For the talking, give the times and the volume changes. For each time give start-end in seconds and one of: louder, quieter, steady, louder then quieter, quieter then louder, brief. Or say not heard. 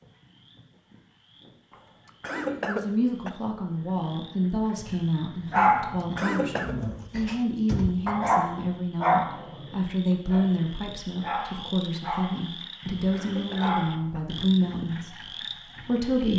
2.6-16.3 steady.